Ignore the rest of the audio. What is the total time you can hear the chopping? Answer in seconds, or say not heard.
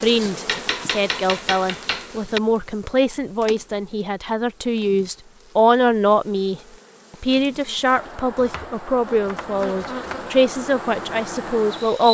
4 s.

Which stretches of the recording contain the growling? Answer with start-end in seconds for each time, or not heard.
not heard.